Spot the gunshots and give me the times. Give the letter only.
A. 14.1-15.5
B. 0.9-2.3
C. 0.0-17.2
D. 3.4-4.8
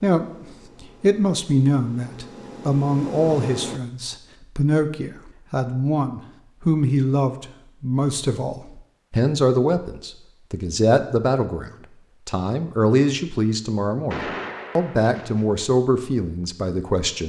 A.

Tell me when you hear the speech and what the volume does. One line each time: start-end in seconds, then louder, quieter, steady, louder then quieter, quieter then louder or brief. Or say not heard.
0.0-17.2 steady.